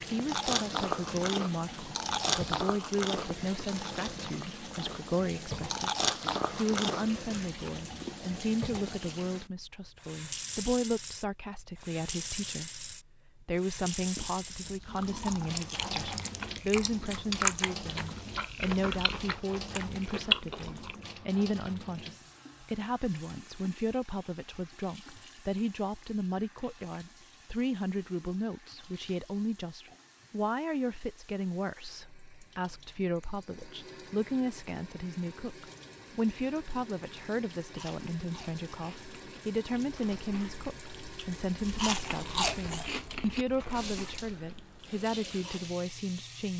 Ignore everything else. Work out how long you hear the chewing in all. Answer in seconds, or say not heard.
23 s.